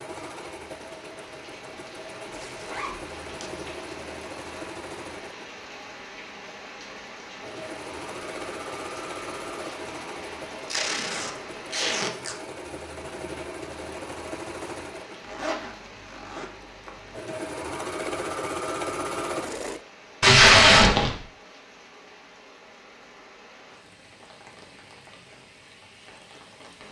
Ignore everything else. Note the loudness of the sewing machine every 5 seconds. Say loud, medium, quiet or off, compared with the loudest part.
medium, medium, medium, loud, off, off.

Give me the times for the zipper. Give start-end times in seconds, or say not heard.
2.5-3.0, 15.2-17.2.